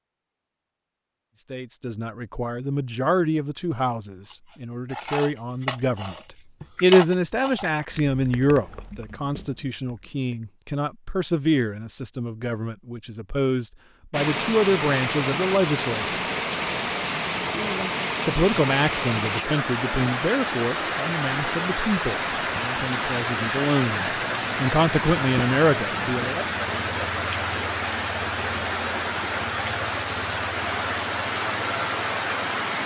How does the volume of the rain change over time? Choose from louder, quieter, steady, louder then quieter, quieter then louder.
steady.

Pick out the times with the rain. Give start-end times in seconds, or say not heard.
14.1-32.8.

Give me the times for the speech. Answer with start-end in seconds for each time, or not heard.
1.5-16.1, 18.2-26.4.